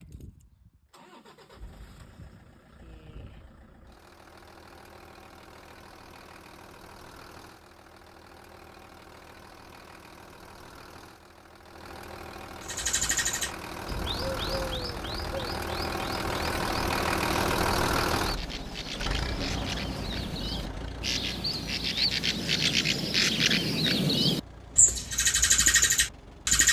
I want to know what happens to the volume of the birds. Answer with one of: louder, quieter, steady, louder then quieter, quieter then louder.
quieter then louder.